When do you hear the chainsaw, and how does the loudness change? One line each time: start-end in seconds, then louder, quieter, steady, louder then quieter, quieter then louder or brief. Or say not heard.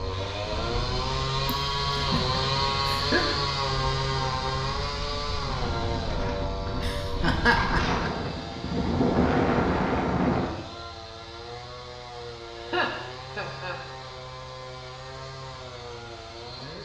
0.0-16.8 quieter.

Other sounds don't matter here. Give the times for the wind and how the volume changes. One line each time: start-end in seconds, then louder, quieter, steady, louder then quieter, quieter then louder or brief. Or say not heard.
0.0-10.5 louder.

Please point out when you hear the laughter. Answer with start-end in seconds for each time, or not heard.
1.4-3.2, 6.6-8.1, 12.6-13.8.